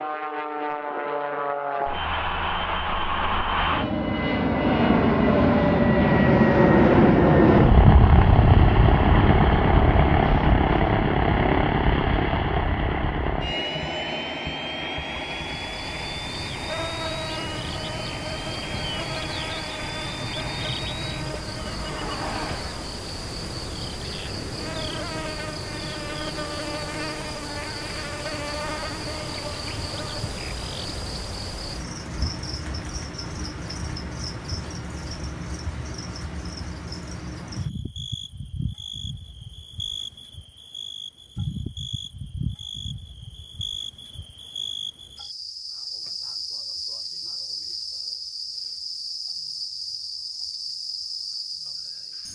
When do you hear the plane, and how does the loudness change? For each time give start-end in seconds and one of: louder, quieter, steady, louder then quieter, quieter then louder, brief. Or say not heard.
0.0-22.9 louder then quieter.